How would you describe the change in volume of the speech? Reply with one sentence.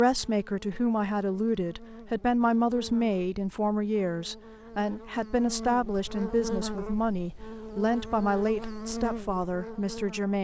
The loudness of the speech stays about the same.